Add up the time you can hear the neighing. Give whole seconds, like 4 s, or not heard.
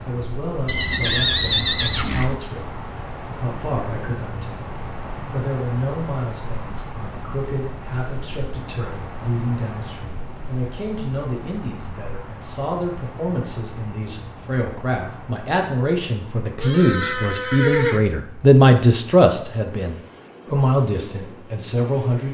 3 s.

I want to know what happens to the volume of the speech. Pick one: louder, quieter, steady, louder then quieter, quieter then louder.
louder.